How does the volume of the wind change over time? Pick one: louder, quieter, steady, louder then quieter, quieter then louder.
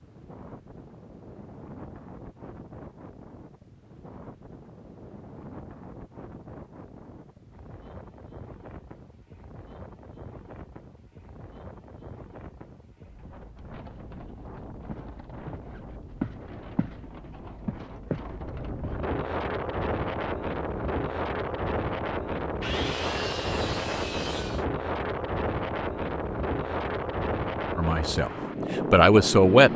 louder.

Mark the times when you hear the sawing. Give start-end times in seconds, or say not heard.
22.6-24.6.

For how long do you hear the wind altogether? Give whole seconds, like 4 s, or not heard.
30 s.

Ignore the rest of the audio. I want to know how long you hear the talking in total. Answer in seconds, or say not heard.
2 s.